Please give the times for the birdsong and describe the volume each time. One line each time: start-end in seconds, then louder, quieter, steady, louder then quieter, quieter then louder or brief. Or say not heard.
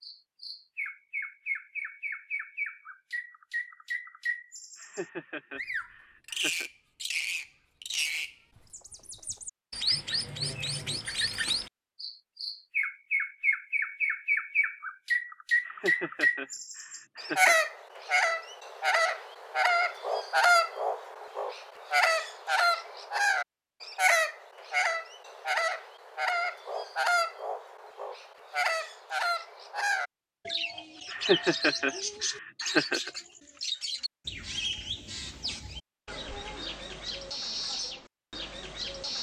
0.0-39.1 louder then quieter.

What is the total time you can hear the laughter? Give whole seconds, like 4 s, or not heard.
6 s.